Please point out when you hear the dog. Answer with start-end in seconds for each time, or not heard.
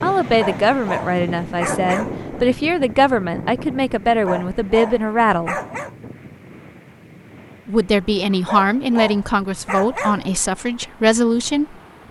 0.2-2.2, 4.1-6.0, 8.3-10.3.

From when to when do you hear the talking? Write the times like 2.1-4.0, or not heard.
0.0-5.5, 7.7-11.8.